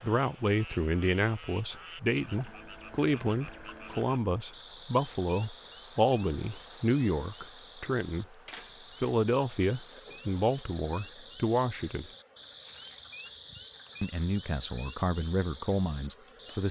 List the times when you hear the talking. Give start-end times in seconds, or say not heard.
0.0-8.2, 9.0-12.1, 14.0-16.6.